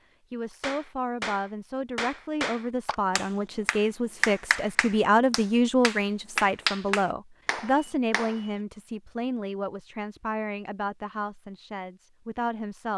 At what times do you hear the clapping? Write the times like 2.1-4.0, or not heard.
0.6-8.6.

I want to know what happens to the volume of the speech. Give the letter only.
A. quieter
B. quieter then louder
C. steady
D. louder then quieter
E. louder
D.